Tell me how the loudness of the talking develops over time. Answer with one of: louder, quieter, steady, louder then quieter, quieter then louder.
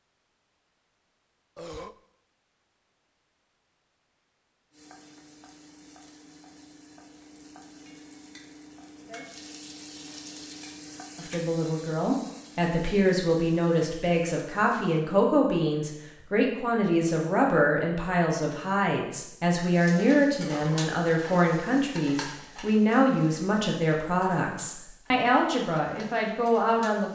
steady.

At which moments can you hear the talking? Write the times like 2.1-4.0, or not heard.
11.2-27.0.